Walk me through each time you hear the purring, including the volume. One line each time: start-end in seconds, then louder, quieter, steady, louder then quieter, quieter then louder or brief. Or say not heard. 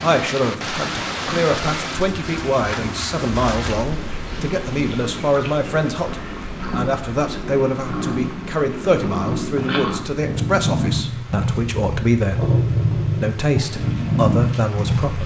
0.0-15.2 louder.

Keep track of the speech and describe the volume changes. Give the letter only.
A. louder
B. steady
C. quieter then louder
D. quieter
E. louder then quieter
B.